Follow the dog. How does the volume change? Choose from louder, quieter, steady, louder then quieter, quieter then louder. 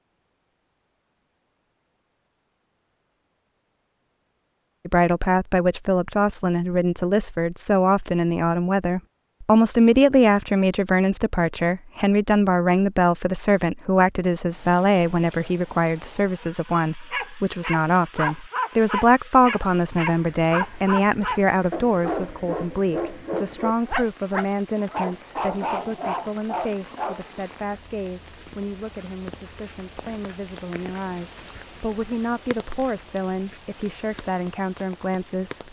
steady.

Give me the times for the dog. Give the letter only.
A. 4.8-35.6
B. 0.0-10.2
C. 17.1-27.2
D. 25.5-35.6
C.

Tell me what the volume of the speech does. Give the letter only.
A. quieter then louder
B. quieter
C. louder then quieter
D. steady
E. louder
B.